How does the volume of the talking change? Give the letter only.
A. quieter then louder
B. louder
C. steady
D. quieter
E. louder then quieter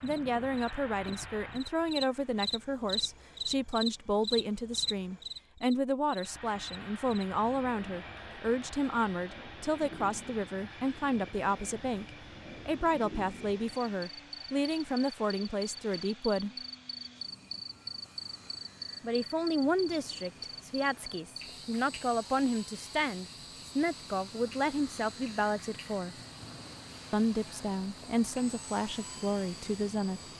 C.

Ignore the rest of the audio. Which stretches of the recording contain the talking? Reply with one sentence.
You can hear the talking from 0.0 to 16.5 s, from 19.0 to 26.1 s and from 27.1 to 30.2 s.